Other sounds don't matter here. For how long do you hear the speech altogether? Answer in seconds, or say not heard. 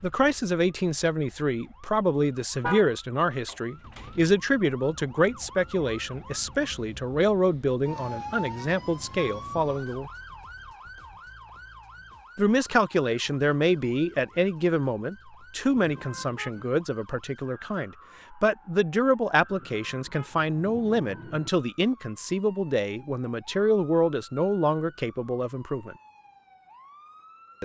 24 s.